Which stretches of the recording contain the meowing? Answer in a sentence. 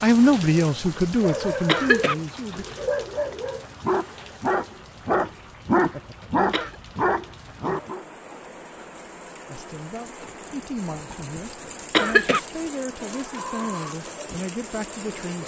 You can't hear the meowing here.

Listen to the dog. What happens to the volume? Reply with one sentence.
The volume of the dog goes up.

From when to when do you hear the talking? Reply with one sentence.
You can hear the talking from 0.0 to 2.6 s and from 9.4 to 15.4 s.